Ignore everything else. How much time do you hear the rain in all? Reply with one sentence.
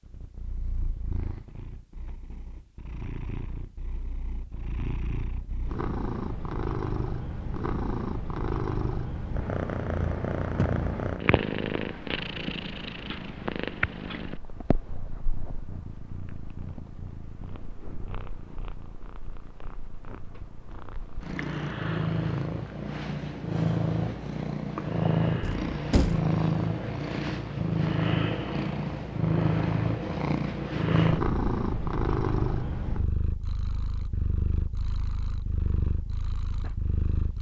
You can't hear the rain here.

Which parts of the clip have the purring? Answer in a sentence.
The purring can be heard from 0.0 to 37.3 s.